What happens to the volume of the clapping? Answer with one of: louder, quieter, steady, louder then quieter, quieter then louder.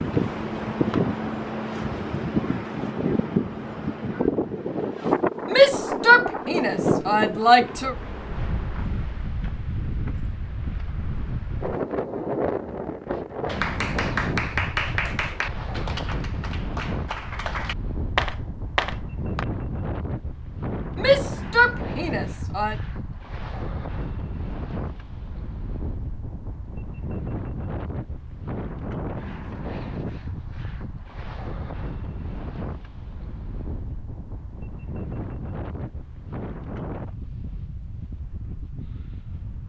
quieter then louder.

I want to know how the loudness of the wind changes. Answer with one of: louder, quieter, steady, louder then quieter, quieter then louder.
quieter.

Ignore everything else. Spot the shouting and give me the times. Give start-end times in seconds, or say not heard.
5.5-8.0, 20.9-22.8.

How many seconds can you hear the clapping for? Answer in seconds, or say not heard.
6 s.